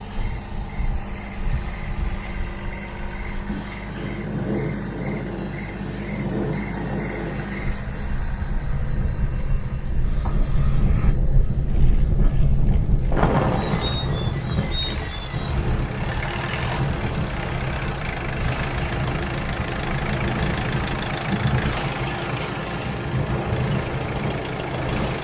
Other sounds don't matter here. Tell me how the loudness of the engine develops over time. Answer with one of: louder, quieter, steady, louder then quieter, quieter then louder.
quieter then louder.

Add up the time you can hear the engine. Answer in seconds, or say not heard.
25 s.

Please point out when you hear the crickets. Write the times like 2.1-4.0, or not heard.
0.0-25.2.